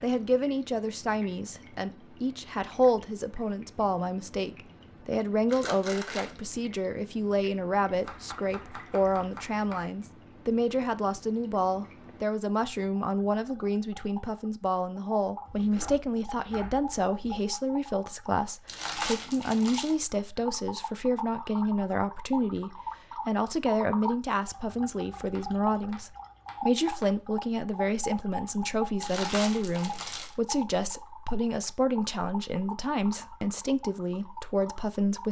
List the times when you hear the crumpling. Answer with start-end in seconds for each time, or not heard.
5.5-6.3, 18.6-19.9, 29.0-30.4.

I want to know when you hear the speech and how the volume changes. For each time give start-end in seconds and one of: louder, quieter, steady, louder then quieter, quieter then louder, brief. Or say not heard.
0.0-35.2 steady.